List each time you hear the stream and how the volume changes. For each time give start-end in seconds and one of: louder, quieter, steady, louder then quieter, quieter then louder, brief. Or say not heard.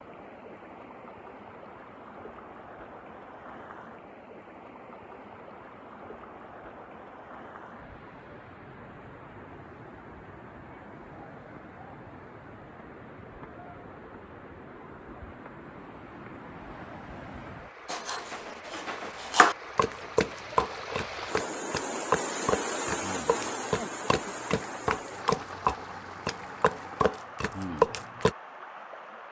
0.0-29.2 louder.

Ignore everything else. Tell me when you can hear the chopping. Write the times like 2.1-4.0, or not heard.
17.9-28.3.